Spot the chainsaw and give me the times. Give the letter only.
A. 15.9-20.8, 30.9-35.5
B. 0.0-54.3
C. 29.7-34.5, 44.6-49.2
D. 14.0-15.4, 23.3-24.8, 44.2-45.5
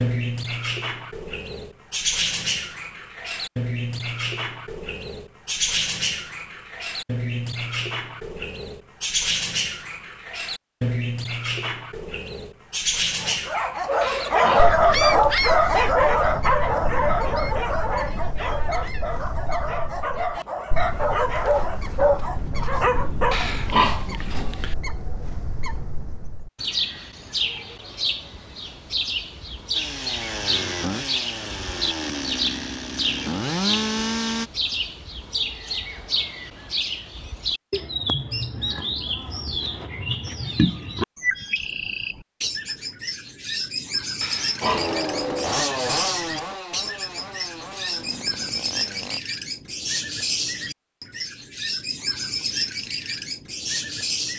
C.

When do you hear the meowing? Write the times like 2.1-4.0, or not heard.
not heard.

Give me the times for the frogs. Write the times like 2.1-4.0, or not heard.
not heard.